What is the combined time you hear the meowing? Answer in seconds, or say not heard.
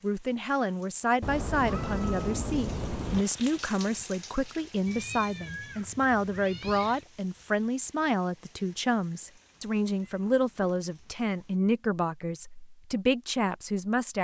6 s.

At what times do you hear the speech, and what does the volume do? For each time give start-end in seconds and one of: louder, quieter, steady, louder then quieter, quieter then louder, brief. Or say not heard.
0.0-14.1 steady.